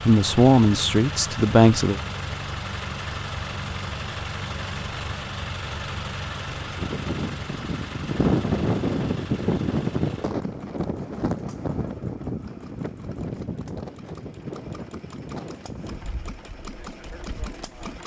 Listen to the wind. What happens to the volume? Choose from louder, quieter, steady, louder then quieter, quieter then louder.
quieter.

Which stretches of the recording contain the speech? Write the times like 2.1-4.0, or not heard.
0.0-2.0.